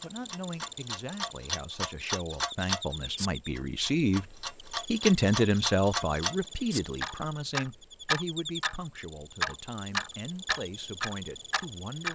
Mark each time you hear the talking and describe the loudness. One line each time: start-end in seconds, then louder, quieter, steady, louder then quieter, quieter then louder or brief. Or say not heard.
0.0-12.1 louder then quieter.